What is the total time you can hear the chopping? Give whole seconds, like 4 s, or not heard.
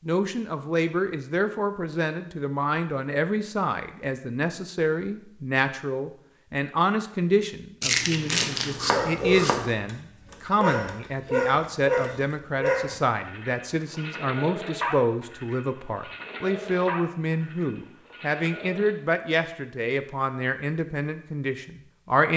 2 s.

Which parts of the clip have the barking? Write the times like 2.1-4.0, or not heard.
8.9-18.9.